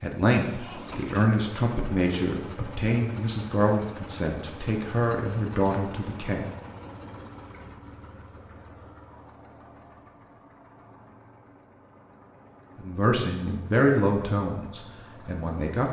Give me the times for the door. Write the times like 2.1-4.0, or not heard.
not heard.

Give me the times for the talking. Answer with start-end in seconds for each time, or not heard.
0.0-6.5, 12.8-15.8.